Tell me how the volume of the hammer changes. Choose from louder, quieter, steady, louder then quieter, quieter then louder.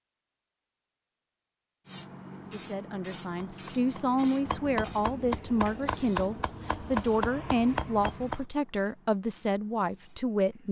louder.